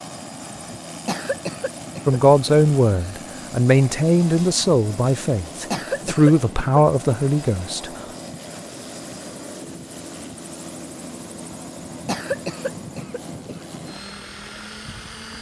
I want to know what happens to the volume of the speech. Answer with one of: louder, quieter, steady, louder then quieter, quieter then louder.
steady.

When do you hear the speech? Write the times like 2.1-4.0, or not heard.
2.0-7.9.